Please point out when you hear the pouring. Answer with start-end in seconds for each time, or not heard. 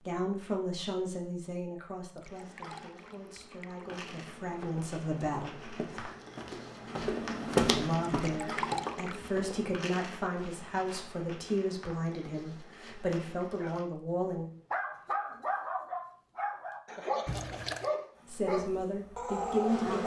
2.0-3.9, 8.1-9.3, 17.2-17.9.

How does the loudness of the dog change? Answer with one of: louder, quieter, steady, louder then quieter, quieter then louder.
steady.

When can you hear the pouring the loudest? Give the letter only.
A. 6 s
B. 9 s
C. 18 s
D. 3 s
B.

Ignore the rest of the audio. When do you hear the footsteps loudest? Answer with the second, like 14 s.
8 s.